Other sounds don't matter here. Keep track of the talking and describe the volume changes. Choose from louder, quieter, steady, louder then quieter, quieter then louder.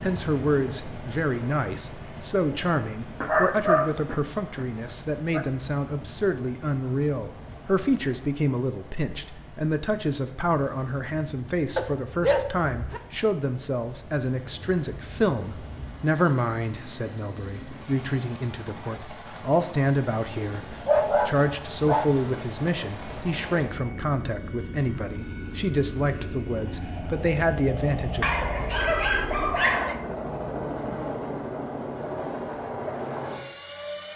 steady.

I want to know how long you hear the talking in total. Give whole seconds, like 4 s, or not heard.
28 s.